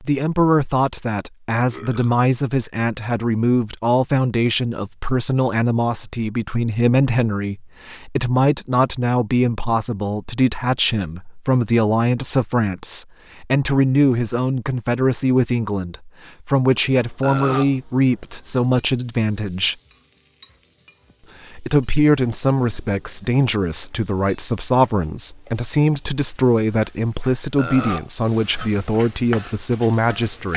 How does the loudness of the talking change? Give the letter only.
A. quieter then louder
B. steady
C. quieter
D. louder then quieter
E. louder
B.